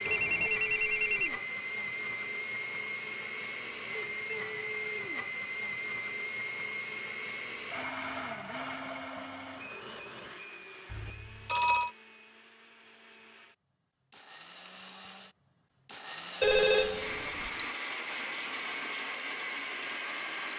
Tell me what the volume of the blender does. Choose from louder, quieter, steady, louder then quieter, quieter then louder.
quieter then louder.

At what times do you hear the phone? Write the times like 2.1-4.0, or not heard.
0.1-1.3, 10.9-11.9, 16.4-17.7.